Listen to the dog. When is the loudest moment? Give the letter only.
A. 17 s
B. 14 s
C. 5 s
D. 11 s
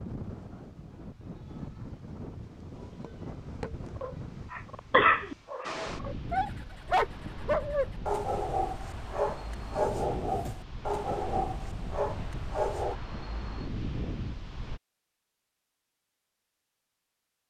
C.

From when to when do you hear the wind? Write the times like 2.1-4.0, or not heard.
0.0-14.8.